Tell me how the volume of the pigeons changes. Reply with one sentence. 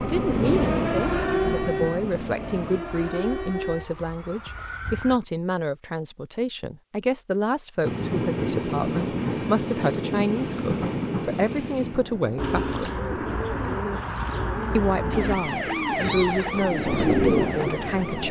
The volume of the pigeons goes up.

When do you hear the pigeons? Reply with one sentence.
You can hear the pigeons from 12.3 to 17.9 s.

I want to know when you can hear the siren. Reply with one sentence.
You can hear the siren from 0.0 to 5.2 s and from 14.2 to 18.2 s.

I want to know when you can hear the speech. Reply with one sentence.
The speech can be heard from 0.0 to 12.9 s and from 14.8 to 18.2 s.